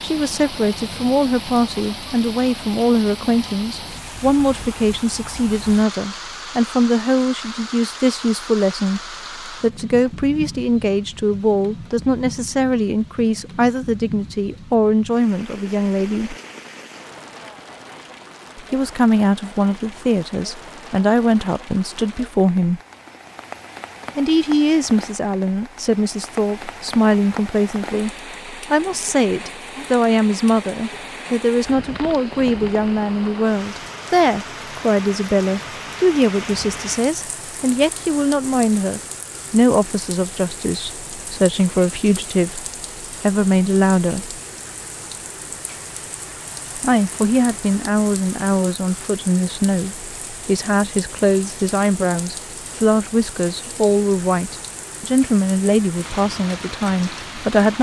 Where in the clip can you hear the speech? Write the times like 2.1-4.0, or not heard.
0.0-16.4, 18.6-22.8, 24.1-44.4, 46.8-57.7.